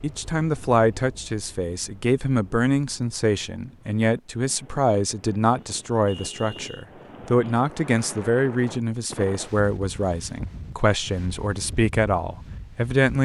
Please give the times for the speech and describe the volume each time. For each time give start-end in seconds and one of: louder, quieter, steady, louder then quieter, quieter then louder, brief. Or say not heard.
0.0-13.1 steady.